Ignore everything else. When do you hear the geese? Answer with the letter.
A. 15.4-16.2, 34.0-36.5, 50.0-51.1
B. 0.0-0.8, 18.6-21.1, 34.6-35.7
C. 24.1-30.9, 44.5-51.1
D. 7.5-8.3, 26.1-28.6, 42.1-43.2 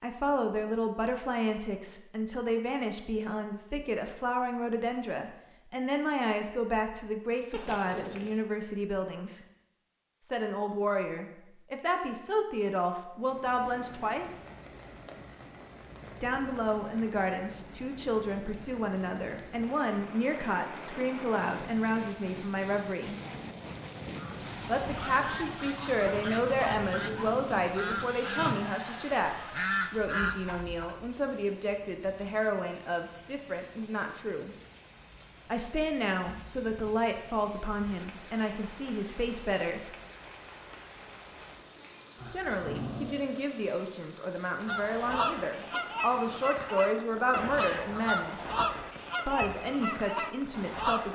C.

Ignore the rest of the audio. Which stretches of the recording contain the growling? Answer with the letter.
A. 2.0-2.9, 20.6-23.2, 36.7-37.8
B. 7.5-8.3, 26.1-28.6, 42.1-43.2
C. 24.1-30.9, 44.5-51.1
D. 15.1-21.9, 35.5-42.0
B.